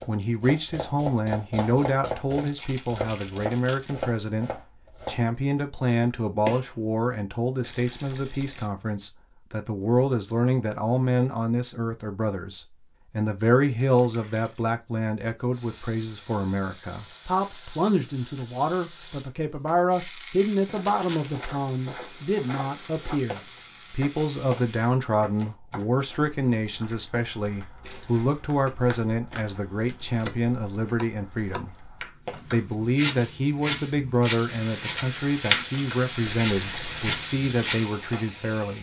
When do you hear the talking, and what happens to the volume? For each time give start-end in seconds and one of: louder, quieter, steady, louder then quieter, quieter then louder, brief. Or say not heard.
0.1-31.7 steady
32.5-38.7 steady.